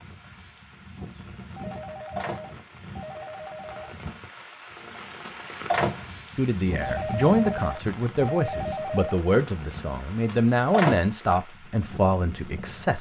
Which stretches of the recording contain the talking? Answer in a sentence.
The talking can be heard from 6.3 to 12.9 s.